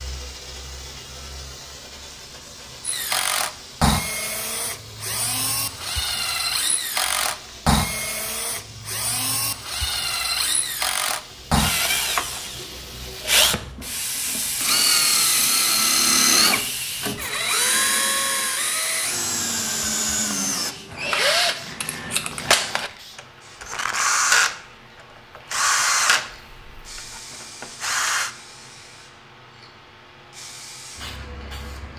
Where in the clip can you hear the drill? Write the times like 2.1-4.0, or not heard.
2.8-28.3.